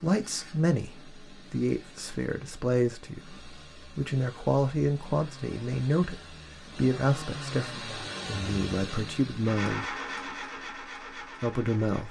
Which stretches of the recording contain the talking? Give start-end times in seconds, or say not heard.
0.0-10.1, 11.4-12.0.